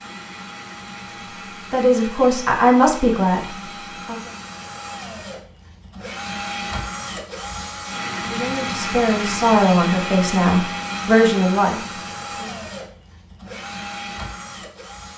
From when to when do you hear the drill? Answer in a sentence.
The drill can be heard from 0.0 to 15.1 s.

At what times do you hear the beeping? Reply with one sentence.
You can't hear the beeping here.